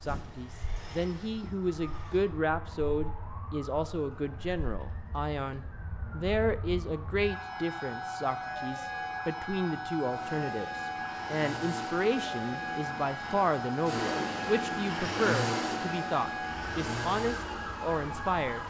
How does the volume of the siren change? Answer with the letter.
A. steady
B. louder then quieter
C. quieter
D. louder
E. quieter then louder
D.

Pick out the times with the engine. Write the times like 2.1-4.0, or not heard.
0.0-2.2, 10.1-18.4.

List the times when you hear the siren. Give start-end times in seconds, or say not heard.
0.0-18.6.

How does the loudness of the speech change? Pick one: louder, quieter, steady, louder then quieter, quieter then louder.
steady.